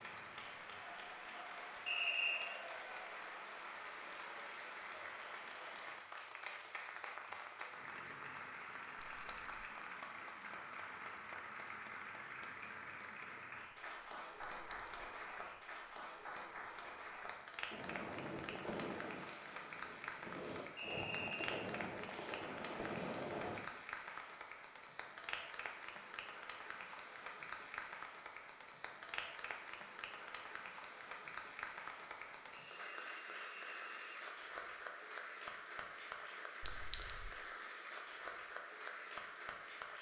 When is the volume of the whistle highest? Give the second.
2 s.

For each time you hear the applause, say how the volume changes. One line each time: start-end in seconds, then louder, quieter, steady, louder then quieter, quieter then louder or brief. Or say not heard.
0.0-39.9 steady.